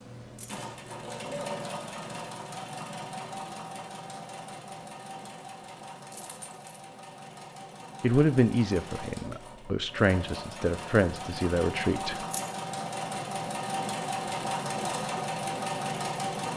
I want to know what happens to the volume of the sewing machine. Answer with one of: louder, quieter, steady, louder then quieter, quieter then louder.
quieter then louder.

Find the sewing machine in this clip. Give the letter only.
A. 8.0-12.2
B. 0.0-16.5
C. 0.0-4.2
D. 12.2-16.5
B.